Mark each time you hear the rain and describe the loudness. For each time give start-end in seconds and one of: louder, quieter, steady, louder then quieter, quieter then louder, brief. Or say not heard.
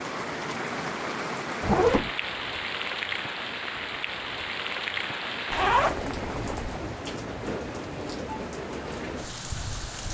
0.0-10.0 steady.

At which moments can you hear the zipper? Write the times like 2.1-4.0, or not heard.
1.6-2.1, 5.5-6.8.